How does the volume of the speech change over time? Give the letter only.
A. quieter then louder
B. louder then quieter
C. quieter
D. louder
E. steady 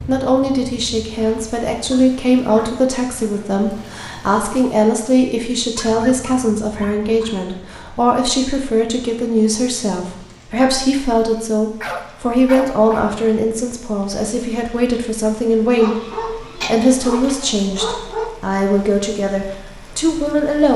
E.